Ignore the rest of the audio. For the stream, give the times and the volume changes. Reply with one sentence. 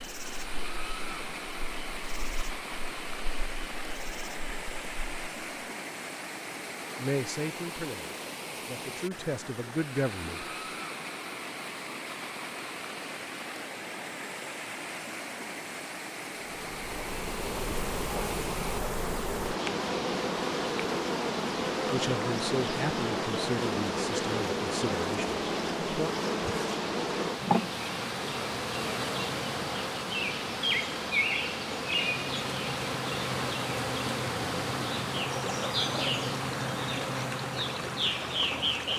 The stream can be heard from 0.0 to 38.9 s, at a steady volume.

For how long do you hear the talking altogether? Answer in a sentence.
You can hear the talking for 8 seconds altogether.